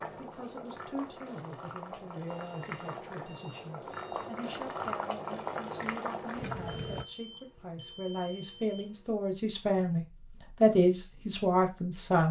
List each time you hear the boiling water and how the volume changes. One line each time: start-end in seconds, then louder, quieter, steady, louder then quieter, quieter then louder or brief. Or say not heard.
0.0-7.0 louder.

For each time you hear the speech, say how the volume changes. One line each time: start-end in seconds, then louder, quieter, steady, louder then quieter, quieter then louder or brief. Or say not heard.
0.1-12.2 louder.